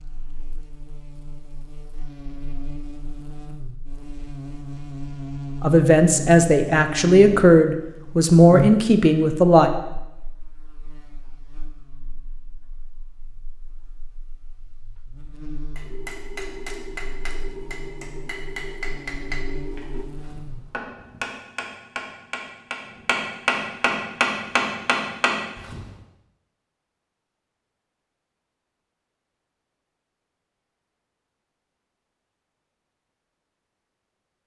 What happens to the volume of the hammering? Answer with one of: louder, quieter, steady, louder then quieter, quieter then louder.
louder.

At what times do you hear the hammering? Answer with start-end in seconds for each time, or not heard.
15.8-25.9.